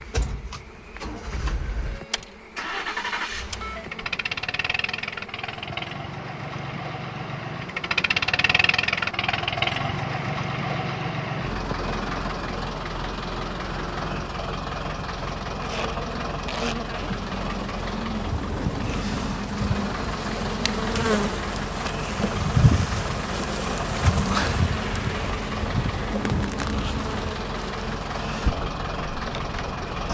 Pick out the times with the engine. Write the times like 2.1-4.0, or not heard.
0.0-30.0.